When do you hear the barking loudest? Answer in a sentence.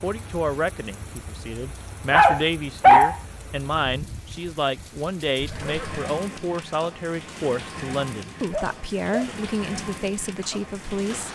The loudest moment of the barking is at 3 seconds.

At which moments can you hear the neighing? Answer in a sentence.
The neighing can be heard from 5.3 to 6.0 s.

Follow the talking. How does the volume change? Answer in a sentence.
The loudness of the talking stays about the same.